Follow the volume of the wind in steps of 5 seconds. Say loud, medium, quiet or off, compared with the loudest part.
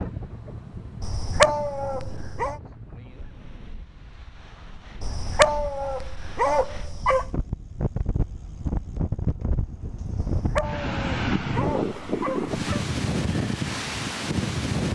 quiet, medium, loud.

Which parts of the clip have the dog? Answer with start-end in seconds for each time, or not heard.
1.0-2.6, 5.0-7.3, 10.2-12.8.